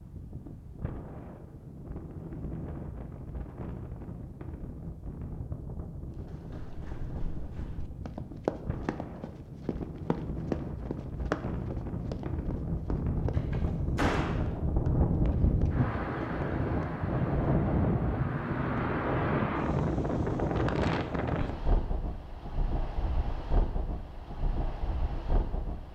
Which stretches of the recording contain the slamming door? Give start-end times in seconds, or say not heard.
13.3-14.5.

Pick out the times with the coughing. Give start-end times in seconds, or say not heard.
not heard.